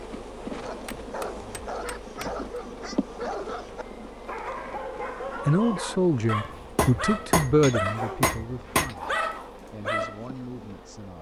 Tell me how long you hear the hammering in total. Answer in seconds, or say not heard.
4 s.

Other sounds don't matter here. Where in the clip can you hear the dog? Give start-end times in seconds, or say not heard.
0.6-10.2.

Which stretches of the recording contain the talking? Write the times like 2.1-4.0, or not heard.
5.5-11.1.